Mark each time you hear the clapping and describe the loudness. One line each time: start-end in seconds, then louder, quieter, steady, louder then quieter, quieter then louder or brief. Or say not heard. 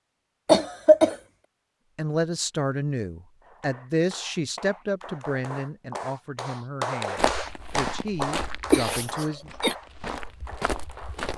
3.4-11.2 louder then quieter.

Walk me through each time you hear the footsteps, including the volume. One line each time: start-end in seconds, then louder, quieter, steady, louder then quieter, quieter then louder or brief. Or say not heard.
7.2-11.3 quieter then louder.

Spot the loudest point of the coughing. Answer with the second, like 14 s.
1 s.